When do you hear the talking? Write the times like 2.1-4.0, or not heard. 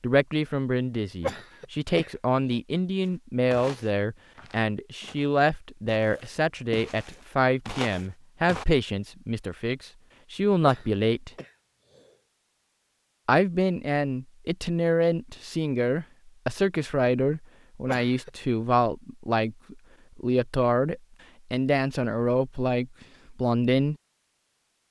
0.0-11.3, 13.2-23.9.